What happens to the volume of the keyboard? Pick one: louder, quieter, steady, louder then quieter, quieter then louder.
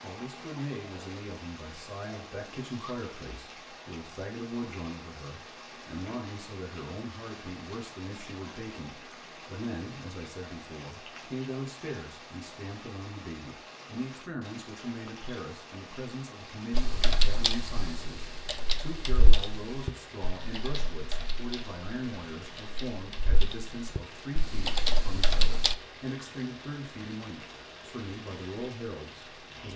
quieter then louder.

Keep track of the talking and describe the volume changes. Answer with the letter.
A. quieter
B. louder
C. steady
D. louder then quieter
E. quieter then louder
C.